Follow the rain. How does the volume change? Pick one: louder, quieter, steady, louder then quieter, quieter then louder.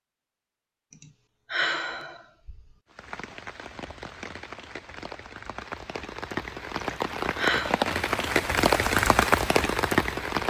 louder.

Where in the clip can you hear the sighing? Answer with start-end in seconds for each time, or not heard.
0.9-2.6, 6.8-7.8.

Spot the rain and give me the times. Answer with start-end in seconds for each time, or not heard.
2.9-10.4.